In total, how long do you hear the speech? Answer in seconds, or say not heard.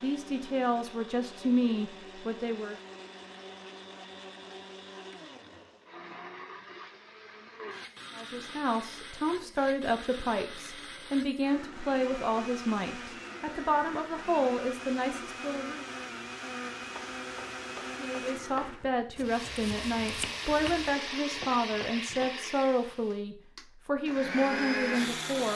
18 s.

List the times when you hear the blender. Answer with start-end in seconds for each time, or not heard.
0.0-25.5.